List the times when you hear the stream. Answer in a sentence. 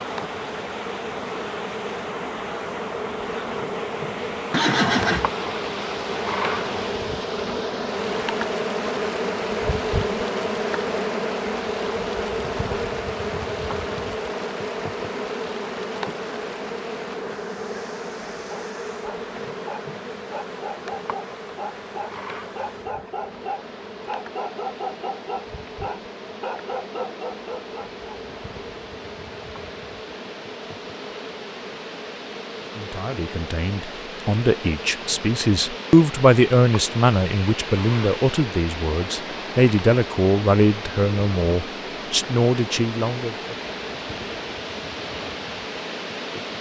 You can hear the stream from 0.0 to 46.5 s.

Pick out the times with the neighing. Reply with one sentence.
You can hear the neighing from 4.5 to 5.3 s.